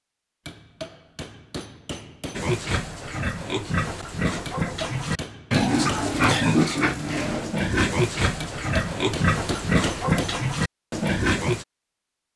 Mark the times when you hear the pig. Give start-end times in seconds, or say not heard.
2.4-11.7.